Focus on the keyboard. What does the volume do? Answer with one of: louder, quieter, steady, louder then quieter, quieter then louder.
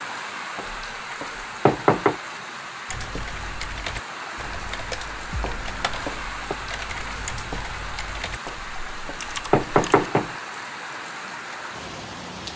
steady.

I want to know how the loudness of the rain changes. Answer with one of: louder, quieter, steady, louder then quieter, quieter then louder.
steady.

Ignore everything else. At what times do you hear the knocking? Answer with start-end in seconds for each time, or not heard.
0.6-2.1, 5.4-6.5, 8.4-10.3.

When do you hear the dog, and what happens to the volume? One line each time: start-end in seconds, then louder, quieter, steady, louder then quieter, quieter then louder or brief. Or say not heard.
not heard.